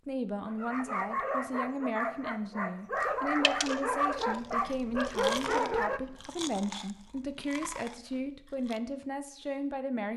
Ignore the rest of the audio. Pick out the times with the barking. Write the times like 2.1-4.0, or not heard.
0.5-6.0.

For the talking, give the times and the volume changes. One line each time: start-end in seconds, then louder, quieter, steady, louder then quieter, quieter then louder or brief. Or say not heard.
0.1-10.1 steady.